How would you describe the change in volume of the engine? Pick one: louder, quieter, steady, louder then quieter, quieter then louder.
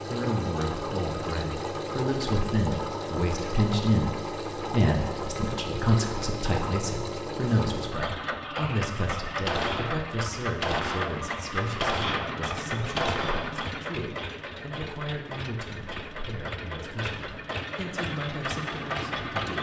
steady.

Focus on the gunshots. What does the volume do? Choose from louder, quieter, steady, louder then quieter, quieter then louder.
louder.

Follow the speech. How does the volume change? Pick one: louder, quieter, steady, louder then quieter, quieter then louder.
quieter.